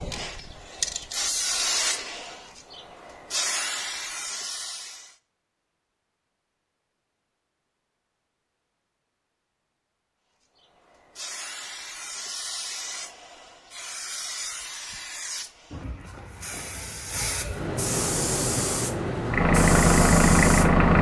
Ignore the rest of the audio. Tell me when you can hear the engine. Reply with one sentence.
You can hear the engine from 19.2 to 20.9 s.